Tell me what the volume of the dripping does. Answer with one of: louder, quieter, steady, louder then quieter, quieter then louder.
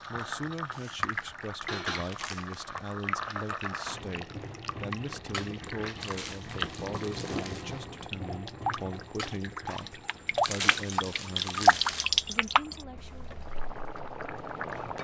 louder.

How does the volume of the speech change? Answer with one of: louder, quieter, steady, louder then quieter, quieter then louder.
steady.